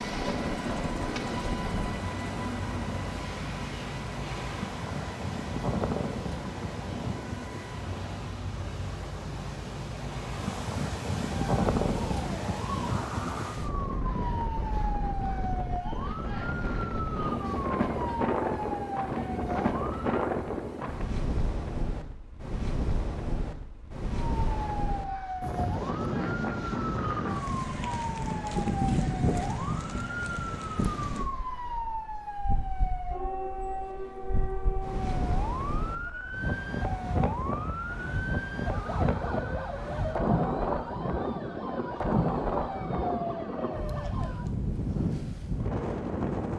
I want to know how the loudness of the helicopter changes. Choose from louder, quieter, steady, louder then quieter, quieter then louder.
quieter.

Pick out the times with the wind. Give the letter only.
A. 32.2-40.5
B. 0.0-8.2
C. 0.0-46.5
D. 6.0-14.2
C.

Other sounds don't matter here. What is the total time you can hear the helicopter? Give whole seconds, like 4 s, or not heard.
8 s.